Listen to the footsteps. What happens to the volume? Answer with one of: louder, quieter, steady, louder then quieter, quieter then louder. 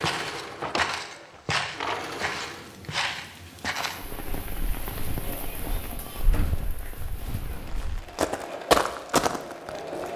quieter then louder.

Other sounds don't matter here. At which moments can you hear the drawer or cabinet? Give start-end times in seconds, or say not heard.
0.4-2.1, 6.2-7.2.